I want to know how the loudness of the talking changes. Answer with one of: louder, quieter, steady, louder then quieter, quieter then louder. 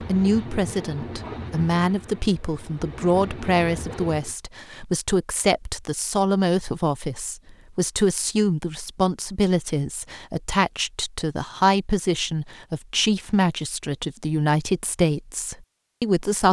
steady.